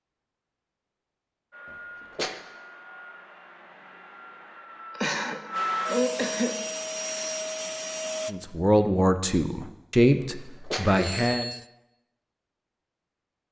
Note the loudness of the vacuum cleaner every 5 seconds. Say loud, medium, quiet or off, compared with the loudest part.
quiet, loud, off.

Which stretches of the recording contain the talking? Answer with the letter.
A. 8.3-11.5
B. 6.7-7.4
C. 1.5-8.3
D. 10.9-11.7
A.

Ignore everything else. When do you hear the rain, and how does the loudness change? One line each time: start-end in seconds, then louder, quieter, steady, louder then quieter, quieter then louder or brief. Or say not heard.
not heard.